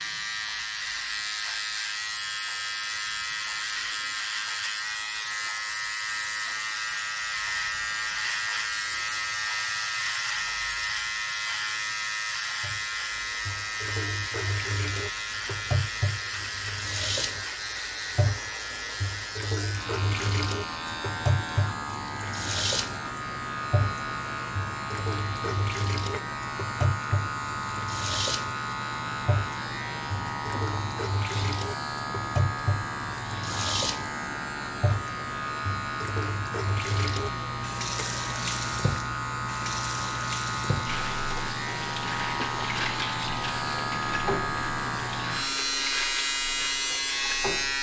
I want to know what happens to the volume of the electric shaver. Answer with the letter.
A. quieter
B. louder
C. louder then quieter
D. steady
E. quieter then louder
D.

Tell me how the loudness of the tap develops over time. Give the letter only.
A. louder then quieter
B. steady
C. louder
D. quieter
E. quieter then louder
B.